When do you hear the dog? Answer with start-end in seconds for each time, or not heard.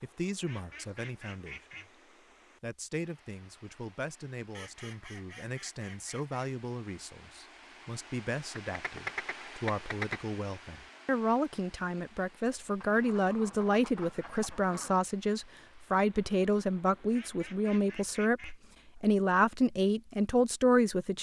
not heard.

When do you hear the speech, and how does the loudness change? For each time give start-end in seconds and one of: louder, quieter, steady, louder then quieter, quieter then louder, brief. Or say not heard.
0.0-1.9 brief
2.6-21.1 louder.